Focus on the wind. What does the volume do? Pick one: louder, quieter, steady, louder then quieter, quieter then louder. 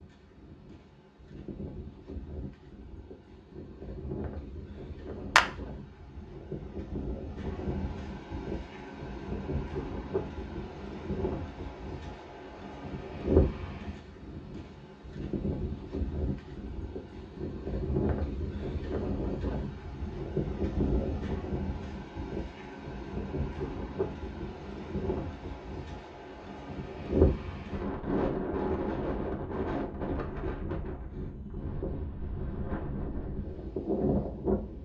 louder.